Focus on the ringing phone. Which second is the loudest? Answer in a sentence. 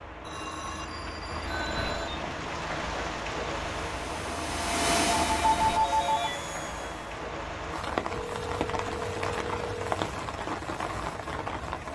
The loudest moment of the ringing phone is at 6 seconds.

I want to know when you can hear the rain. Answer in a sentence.
The rain can be heard from 0.0 to 11.9 s.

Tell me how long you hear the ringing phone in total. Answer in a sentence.
The ringing phone can be heard for 5 seconds in total.